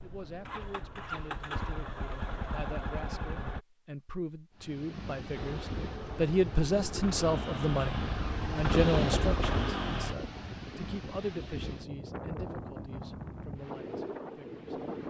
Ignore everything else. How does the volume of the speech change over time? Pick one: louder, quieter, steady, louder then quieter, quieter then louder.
louder then quieter.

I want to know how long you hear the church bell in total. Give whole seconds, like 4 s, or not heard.
not heard.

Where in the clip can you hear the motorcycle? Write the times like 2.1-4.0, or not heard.
0.0-3.6, 5.3-10.2.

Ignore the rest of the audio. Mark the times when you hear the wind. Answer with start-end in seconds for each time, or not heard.
4.5-15.0.